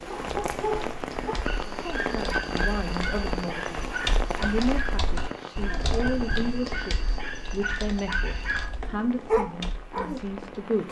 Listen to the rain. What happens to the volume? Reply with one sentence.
The loudness of the rain goes down.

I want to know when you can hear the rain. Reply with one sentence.
The rain can be heard from 0.0 to 10.8 s.